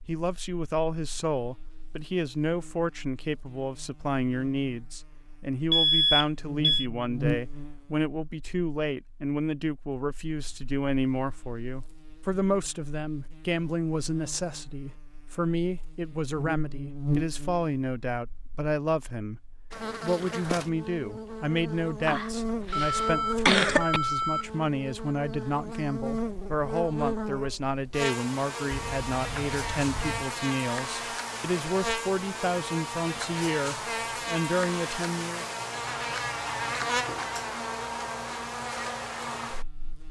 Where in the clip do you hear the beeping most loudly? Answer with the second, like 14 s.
6 s.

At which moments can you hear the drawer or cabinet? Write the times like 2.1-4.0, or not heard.
not heard.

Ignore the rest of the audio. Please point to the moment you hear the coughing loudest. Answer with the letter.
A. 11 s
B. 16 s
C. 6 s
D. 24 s
D.